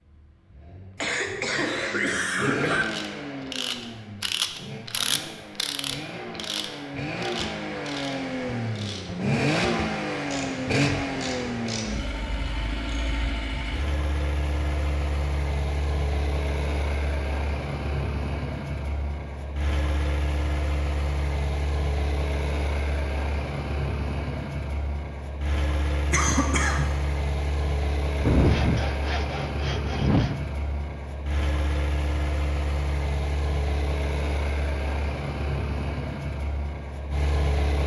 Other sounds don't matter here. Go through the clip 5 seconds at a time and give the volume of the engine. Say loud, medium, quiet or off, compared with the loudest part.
medium, loud, loud, loud, loud, loud, loud, loud.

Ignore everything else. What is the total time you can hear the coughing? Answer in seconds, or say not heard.
3 s.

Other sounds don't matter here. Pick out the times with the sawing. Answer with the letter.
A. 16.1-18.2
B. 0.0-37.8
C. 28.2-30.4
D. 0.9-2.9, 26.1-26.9
C.